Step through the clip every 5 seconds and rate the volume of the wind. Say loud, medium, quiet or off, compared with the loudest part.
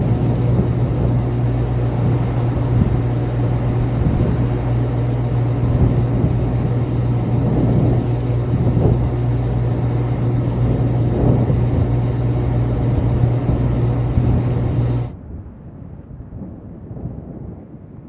loud, loud, loud, quiet.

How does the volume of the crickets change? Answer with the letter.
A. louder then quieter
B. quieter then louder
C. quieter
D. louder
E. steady
E.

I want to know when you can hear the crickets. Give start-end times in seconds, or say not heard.
0.0-15.1.